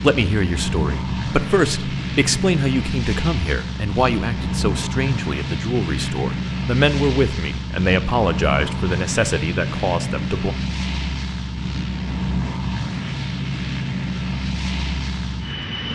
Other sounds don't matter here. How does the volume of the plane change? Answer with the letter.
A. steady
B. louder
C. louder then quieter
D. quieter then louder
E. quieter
A.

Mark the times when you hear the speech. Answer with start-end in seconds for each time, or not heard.
0.0-10.6.